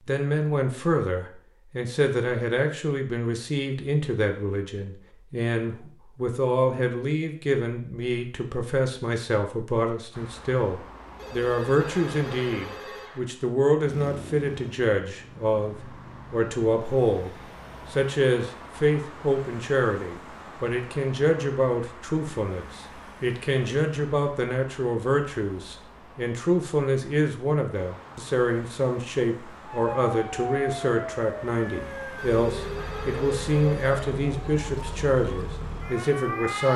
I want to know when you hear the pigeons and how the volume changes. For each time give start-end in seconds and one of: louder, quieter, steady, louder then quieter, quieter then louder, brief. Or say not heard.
not heard.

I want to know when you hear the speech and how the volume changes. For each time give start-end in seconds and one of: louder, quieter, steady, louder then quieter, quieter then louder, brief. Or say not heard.
0.1-17.3 steady
17.9-36.7 steady.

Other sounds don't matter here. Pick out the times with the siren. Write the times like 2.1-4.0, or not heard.
29.6-36.7.